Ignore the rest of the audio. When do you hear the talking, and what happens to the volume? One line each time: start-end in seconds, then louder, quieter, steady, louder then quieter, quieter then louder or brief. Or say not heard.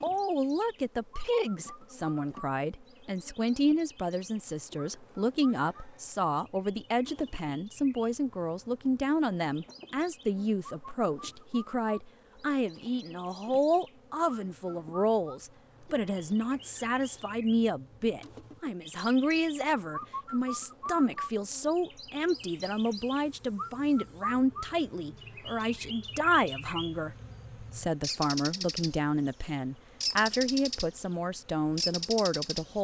0.0-32.7 steady.